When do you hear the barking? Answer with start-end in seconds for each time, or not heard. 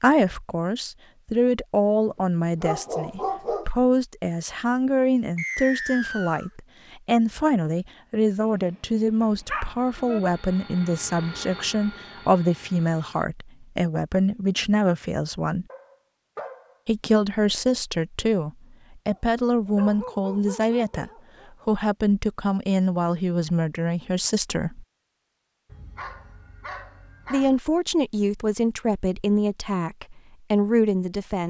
2.2-3.7, 9.2-10.2, 15.7-16.8, 19.1-21.5, 25.6-27.6.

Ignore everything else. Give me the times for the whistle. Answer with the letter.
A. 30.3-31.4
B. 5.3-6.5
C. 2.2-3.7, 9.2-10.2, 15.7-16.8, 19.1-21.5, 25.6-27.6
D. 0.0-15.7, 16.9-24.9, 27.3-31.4
B.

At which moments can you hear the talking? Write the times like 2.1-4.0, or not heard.
0.0-15.7, 16.9-24.9, 27.3-31.4.